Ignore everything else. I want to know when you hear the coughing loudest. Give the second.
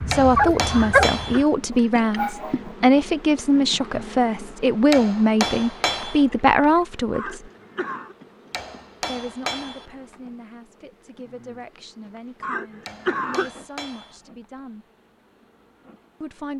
13 s.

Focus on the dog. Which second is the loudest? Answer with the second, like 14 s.
1 s.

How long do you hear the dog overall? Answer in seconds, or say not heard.
3 s.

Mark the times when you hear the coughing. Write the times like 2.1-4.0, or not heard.
0.7-1.5, 7.1-8.2, 12.4-13.5.